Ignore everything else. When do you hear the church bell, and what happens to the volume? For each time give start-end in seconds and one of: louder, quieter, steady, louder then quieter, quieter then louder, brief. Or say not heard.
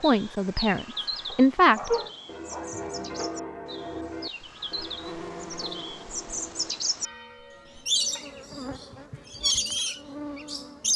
2.2-8.2 quieter.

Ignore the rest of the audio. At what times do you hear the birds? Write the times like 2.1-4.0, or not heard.
0.0-7.1, 7.8-10.9.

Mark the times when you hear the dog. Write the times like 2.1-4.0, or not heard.
1.2-2.9.